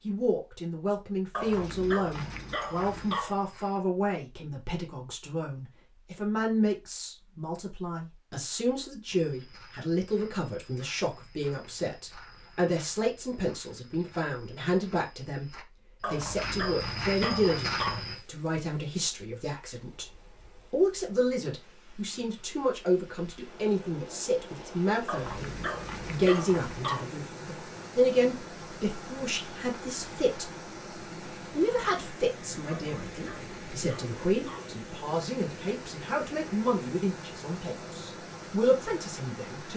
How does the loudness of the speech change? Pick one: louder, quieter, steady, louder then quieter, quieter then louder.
steady.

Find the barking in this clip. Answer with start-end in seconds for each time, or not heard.
1.3-3.4, 16.0-18.1, 25.1-27.1, 32.7-34.7.